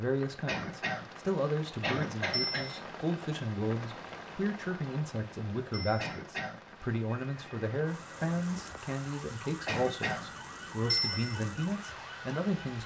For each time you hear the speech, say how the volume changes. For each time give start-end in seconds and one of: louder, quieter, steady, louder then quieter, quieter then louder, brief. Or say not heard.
0.0-12.8 steady.